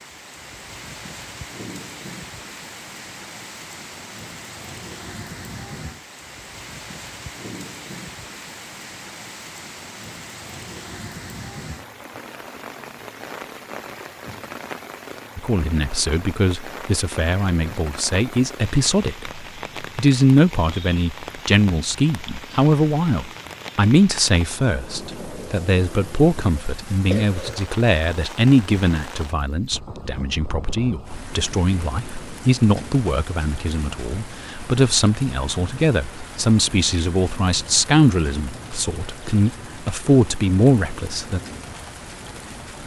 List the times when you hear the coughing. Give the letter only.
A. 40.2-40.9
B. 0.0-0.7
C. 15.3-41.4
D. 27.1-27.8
D.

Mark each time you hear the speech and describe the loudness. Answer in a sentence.
The speech can be heard from 15.3 to 41.4 s, at a steady volume.